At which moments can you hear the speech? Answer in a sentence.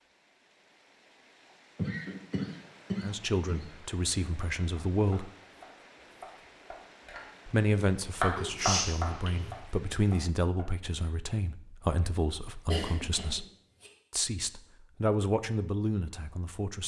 You can hear the speech from 3.0 to 5.3 s, from 7.5 to 13.4 s and from 14.1 to 16.8 s.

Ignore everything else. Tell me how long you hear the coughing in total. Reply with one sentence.
The coughing can be heard for 4 seconds in total.